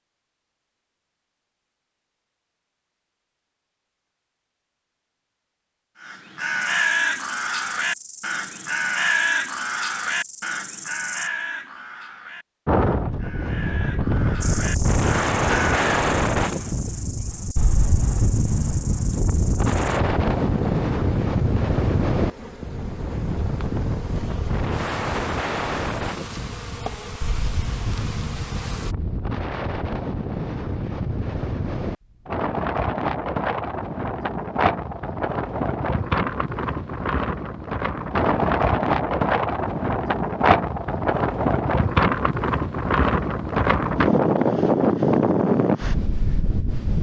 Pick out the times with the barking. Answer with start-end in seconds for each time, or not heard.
not heard.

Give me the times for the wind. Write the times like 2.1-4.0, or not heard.
12.7-46.9.